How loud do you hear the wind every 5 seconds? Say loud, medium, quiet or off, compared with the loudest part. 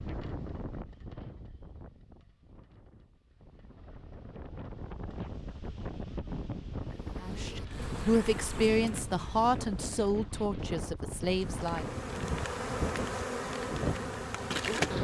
medium, loud, loud.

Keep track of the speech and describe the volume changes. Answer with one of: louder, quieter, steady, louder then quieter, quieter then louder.
quieter.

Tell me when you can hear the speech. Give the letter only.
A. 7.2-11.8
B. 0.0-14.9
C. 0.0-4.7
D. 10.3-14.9
A.